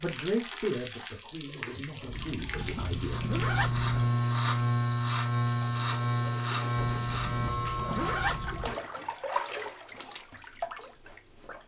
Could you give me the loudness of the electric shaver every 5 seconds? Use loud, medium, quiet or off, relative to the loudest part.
loud, loud, off.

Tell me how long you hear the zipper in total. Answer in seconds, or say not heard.
4 s.